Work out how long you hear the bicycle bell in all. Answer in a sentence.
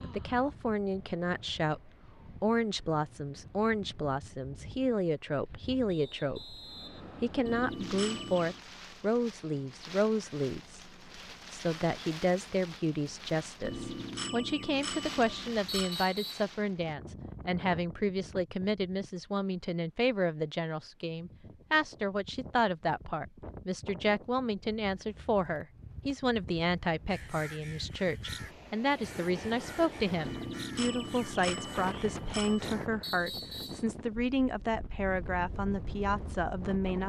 The bicycle bell can be heard for 6 seconds in total.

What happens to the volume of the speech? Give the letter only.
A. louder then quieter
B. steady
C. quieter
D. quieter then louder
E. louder
B.